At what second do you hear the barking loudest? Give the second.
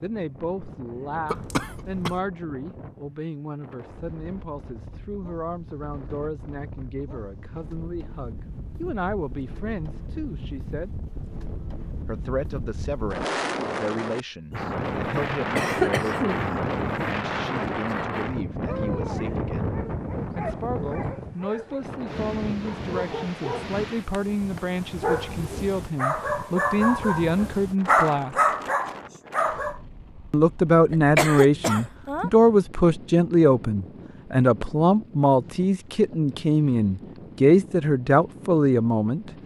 28 s.